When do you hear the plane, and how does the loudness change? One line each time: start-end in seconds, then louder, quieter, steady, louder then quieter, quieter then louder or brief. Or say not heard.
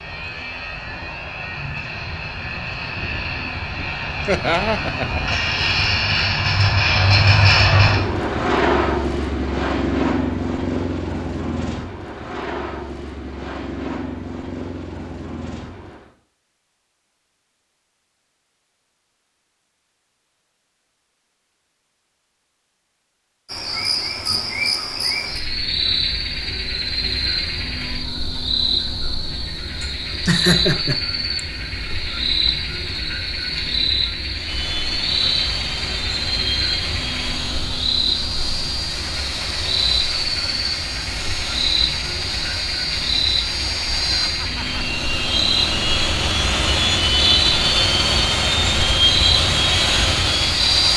0.0-16.1 louder then quieter
34.3-50.9 louder.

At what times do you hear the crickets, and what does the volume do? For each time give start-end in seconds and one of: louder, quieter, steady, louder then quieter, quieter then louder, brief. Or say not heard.
23.4-50.9 steady.